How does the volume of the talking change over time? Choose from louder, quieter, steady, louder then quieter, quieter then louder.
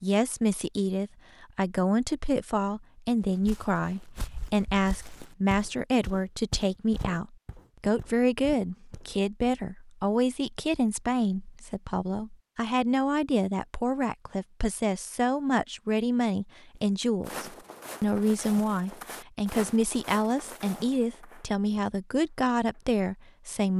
steady.